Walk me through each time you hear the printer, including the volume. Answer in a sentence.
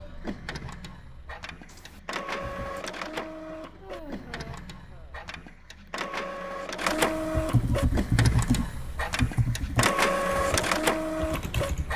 The printer can be heard from 0.0 to 11.9 s, getting louder.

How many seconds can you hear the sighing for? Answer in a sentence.
You can hear the sighing for 2 seconds altogether.